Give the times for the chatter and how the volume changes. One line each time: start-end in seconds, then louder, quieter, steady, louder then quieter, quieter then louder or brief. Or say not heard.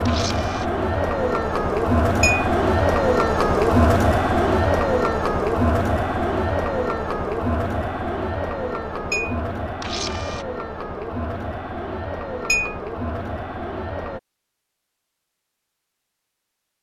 0.0-14.2 quieter.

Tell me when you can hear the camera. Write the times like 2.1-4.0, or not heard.
0.1-0.7, 9.8-10.4.